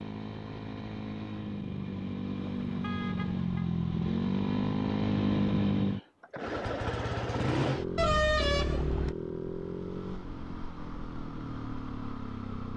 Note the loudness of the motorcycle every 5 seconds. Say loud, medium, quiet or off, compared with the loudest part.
loud, loud, medium.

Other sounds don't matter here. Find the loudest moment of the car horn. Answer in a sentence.
The loudest moment of the car horn is at 8 seconds.